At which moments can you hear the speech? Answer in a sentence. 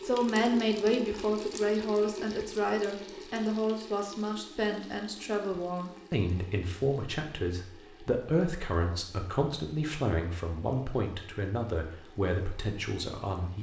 You can hear the speech from 0.0 to 13.5 s.